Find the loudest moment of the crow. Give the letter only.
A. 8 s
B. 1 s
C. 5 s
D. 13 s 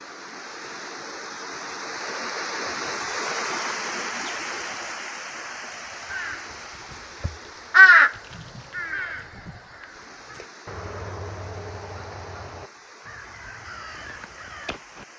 A.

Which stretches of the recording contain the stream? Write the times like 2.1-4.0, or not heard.
0.0-15.1.